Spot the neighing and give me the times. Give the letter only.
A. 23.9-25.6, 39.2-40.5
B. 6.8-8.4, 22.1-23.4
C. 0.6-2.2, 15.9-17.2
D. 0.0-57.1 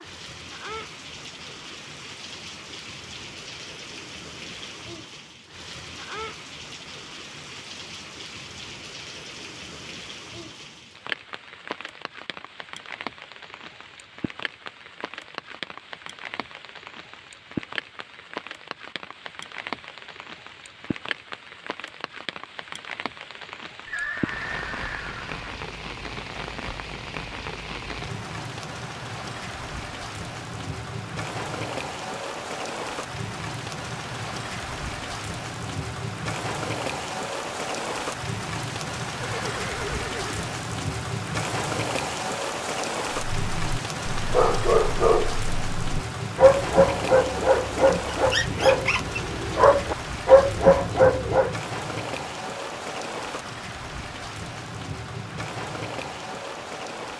A.